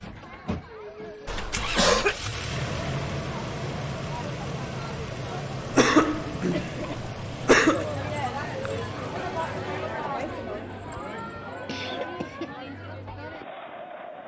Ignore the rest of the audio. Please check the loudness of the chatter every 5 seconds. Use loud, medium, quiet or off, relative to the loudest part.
medium, loud, loud.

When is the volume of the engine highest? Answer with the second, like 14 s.
3 s.